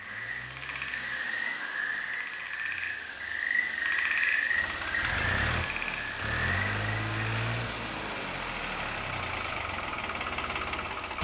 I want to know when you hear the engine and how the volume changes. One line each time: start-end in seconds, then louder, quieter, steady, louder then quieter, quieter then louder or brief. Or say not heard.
0.0-11.1 louder.